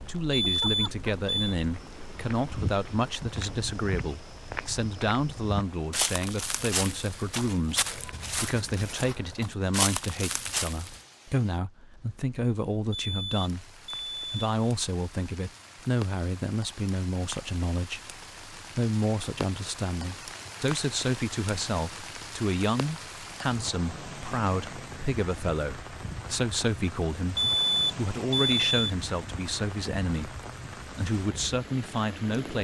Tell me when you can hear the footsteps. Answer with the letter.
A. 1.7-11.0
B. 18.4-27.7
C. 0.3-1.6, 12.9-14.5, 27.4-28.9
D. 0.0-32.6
A.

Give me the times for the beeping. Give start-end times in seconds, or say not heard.
0.3-1.6, 12.9-14.5, 27.4-28.9.